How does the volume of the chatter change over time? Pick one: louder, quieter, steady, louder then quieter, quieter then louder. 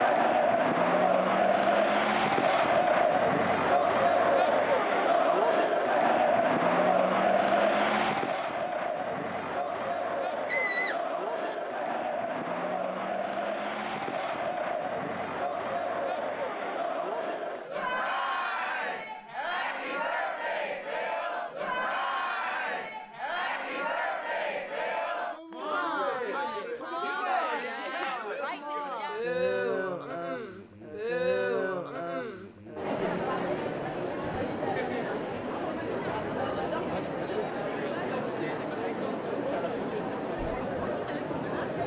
quieter.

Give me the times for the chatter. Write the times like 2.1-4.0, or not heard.
0.0-41.8.